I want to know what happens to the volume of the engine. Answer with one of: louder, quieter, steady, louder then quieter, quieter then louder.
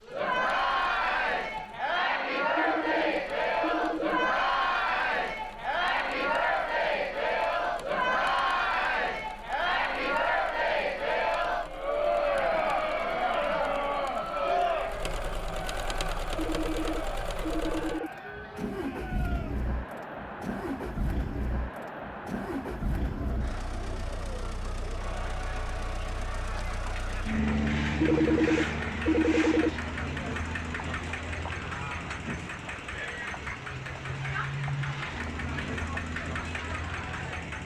louder.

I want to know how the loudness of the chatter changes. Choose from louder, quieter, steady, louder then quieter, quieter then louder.
quieter.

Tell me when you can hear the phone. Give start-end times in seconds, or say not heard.
2.5-4.3, 16.4-18.1, 28.0-29.7.